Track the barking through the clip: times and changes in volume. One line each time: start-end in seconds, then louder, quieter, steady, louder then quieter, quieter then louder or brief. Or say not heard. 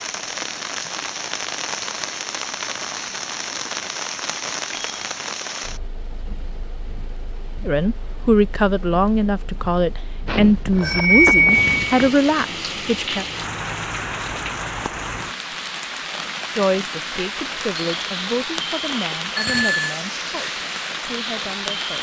not heard.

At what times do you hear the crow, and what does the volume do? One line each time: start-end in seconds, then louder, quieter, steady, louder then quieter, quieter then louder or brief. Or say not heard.
not heard.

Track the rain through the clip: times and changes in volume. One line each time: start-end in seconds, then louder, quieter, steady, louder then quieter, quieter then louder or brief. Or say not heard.
0.0-21.9 quieter then louder.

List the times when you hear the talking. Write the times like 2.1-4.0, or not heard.
7.7-13.2, 16.5-21.9.